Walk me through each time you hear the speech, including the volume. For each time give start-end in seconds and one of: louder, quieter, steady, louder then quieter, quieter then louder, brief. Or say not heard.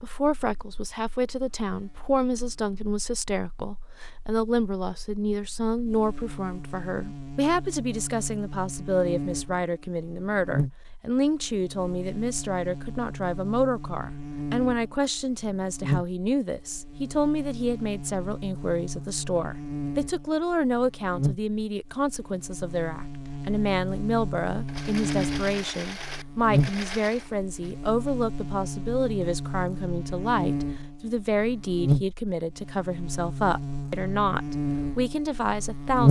0.0-36.0 steady.